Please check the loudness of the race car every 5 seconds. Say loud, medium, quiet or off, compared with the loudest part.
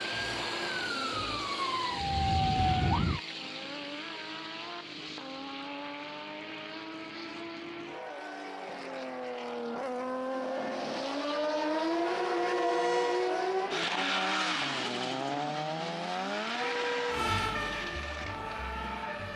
medium, medium, loud, medium.